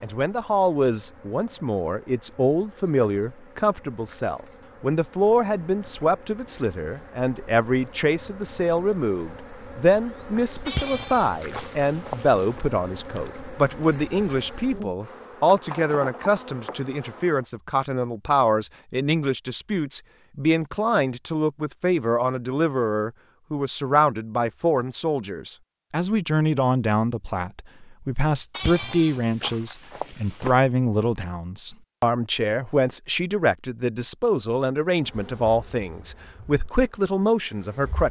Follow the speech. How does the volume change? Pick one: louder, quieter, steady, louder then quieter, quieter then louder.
steady.